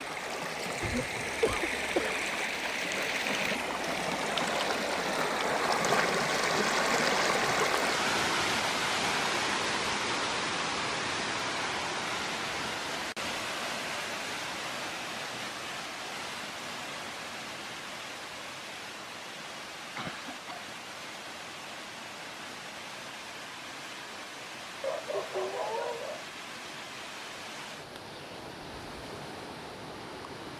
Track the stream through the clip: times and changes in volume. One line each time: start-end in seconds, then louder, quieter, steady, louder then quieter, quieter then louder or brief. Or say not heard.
0.0-30.5 quieter.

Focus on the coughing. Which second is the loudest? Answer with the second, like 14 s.
2 s.